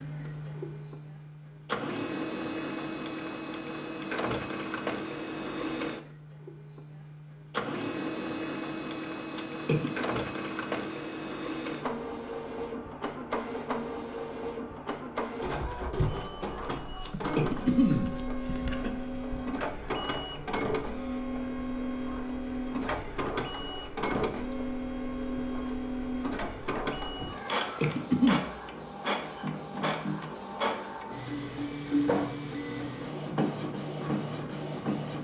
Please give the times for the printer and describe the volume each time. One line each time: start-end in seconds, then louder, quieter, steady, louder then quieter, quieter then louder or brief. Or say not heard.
0.0-35.1 steady.